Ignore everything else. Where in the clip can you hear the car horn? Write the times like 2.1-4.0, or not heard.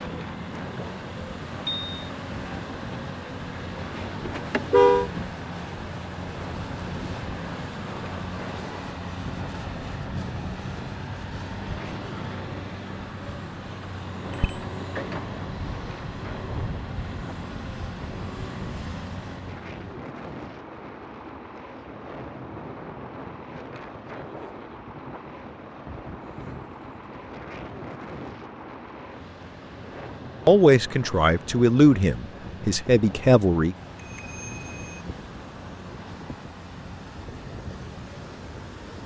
4.2-5.1.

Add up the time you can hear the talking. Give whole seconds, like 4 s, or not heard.
3 s.